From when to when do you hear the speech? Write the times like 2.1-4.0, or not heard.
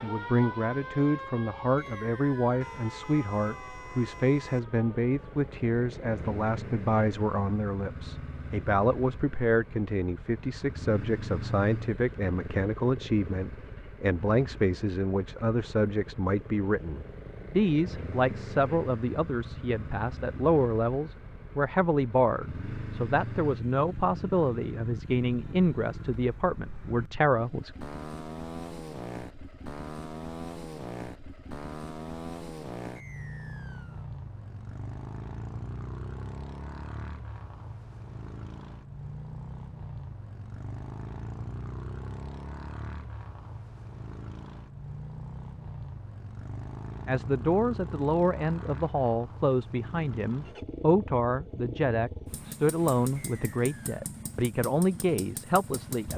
0.0-27.7, 47.0-56.1.